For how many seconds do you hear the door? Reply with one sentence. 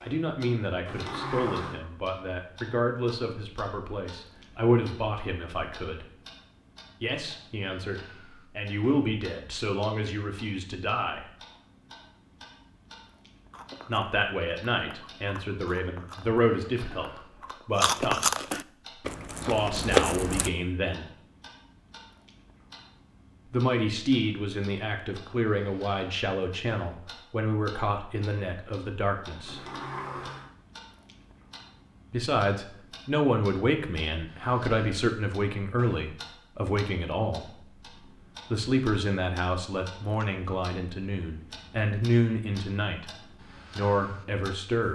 You can hear the door for 2 seconds altogether.